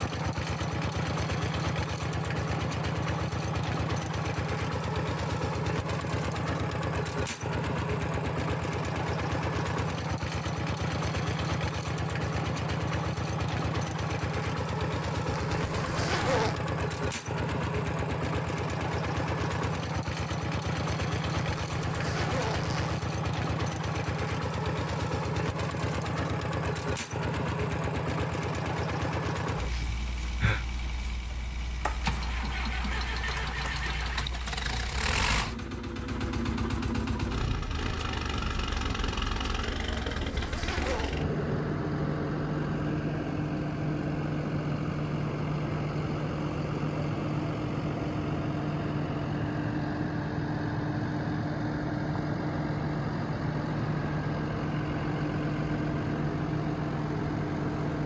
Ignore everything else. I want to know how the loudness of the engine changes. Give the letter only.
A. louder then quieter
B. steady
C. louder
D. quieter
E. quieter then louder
B.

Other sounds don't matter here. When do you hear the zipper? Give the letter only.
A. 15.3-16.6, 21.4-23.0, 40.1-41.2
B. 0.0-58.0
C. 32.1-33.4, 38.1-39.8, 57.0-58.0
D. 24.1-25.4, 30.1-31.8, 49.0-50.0
A.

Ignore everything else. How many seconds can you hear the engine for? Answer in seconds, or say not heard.
58 s.